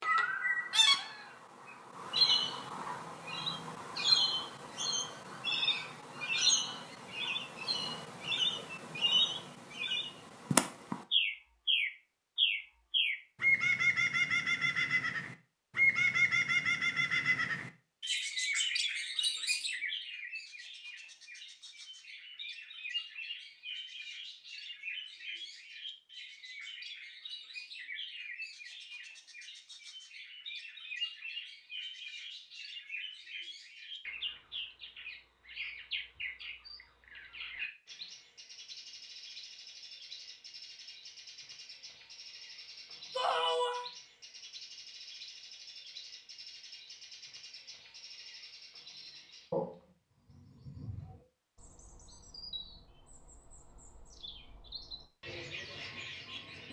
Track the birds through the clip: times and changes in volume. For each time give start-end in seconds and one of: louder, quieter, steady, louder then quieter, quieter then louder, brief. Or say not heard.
0.0-56.6 quieter.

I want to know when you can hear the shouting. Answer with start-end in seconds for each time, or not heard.
43.1-43.9.